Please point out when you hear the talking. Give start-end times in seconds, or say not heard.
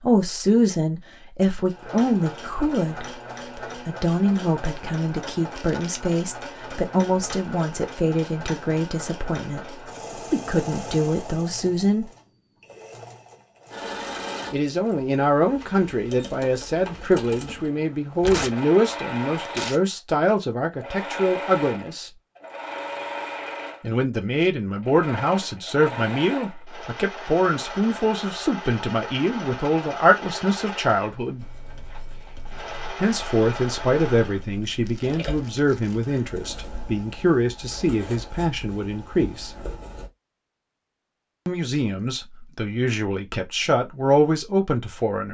0.0-12.1, 14.5-22.1, 23.8-31.4, 33.0-39.5, 41.5-45.2.